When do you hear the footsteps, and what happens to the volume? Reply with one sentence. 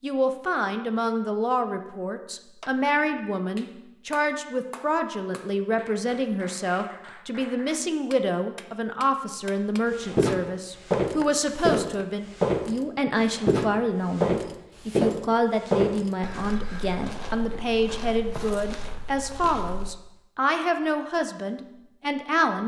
You can hear the footsteps from 10.0 to 19.9 s, getting quieter.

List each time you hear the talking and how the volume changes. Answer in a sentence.
You can hear the talking from 0.0 to 22.6 s, at a steady volume.